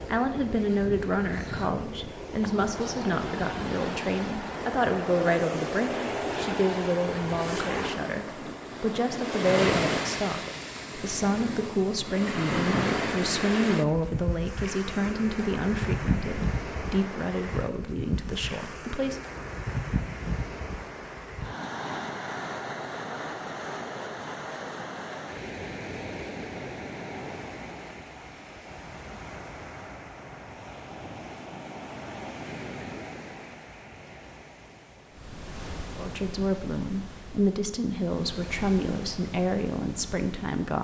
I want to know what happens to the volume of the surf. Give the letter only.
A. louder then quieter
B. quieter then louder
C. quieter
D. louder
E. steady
C.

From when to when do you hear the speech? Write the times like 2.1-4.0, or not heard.
0.1-19.2, 36.0-40.7.